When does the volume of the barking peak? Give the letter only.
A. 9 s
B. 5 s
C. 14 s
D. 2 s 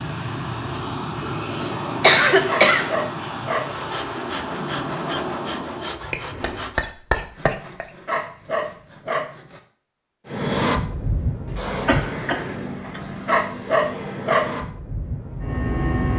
C.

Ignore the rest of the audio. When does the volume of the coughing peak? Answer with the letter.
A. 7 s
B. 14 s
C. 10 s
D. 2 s
D.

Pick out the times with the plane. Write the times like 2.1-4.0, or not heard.
0.0-6.8, 10.2-16.1.